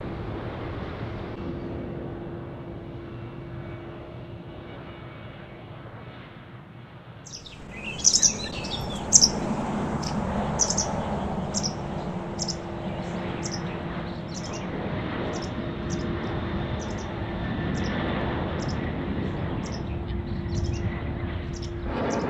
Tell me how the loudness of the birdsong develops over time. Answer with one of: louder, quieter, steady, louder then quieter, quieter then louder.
quieter.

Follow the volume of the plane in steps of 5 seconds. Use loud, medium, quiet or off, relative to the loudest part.
medium, quiet, medium, loud, loud.